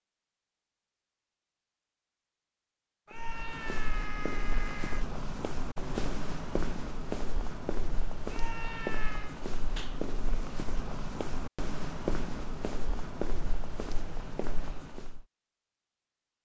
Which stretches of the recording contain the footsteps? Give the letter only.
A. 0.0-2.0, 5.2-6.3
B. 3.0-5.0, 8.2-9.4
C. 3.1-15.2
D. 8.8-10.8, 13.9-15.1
C.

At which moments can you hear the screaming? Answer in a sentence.
You can hear the screaming from 3.0 to 5.0 s and from 8.2 to 9.4 s.